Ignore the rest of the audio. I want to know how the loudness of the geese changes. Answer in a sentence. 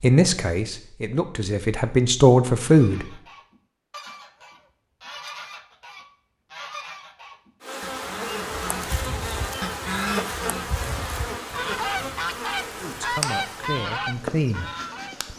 The volume of the geese goes up.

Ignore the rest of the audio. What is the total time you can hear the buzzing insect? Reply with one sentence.
The buzzing insect can be heard for 8 seconds in total.